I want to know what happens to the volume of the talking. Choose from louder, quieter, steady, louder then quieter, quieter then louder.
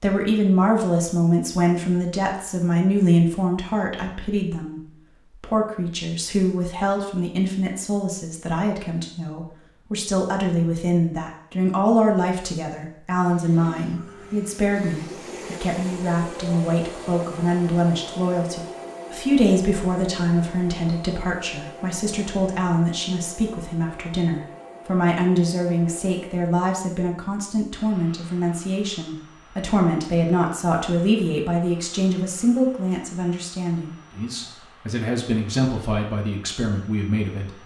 steady.